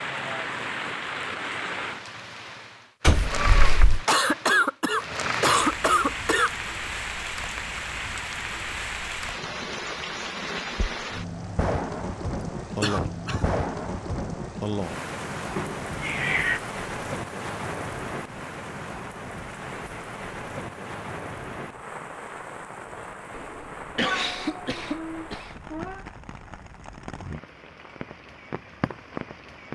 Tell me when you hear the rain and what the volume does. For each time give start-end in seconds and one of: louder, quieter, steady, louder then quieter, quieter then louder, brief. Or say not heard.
0.0-29.7 quieter.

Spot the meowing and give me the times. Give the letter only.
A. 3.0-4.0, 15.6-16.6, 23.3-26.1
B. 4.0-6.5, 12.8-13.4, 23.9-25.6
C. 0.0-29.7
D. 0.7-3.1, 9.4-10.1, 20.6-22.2
A.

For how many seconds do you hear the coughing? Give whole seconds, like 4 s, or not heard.
5 s.